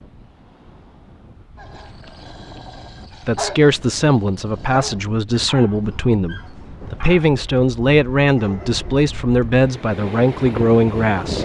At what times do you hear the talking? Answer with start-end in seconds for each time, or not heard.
3.2-11.4.